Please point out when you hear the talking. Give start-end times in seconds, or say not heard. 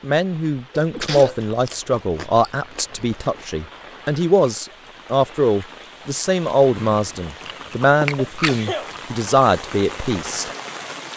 0.0-10.5.